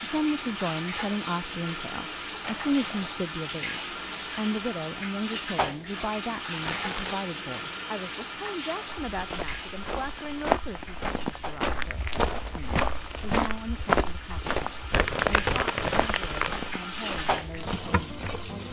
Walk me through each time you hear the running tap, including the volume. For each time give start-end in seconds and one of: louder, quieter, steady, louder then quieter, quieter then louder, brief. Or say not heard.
0.0-18.6 quieter then louder.